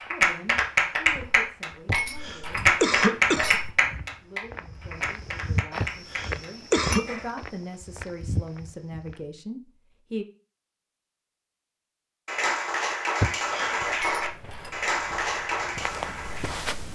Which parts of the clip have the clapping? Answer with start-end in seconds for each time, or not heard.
0.0-7.2, 12.2-16.8.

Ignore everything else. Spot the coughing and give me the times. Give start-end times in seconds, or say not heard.
1.9-3.5, 5.8-7.0, 13.2-13.8.